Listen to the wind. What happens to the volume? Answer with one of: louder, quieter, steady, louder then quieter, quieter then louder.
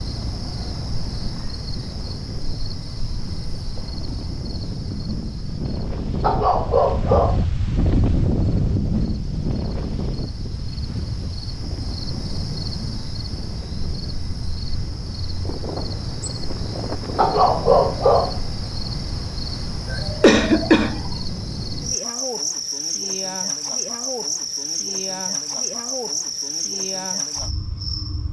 louder then quieter.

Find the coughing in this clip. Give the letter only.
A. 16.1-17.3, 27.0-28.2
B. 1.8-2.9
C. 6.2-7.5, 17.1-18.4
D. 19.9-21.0
D.